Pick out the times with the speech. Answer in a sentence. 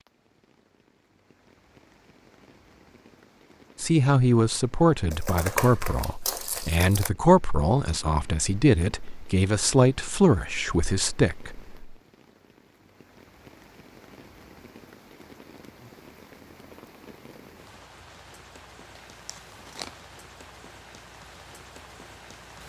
You can hear the speech from 3.8 to 11.9 s.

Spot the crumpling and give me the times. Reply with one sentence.
The crumpling can be heard from 5.1 to 7.1 s and from 19.1 to 20.0 s.